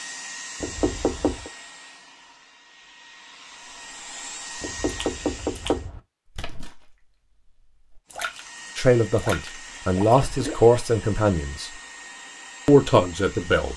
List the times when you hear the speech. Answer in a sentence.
You can hear the speech from 8.8 to 11.7 s and from 12.7 to 13.7 s.